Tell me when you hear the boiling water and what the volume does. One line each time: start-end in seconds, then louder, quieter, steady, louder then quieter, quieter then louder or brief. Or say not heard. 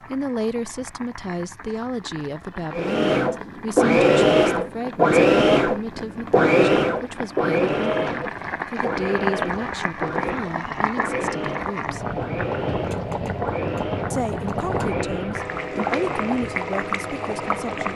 0.0-17.9 louder.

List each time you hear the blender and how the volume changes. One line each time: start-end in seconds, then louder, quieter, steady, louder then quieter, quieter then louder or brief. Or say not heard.
2.7-16.3 quieter.